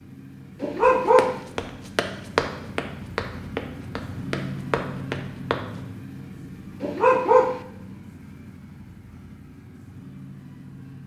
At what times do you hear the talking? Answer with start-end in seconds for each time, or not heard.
not heard.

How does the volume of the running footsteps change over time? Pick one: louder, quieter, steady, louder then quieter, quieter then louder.
louder then quieter.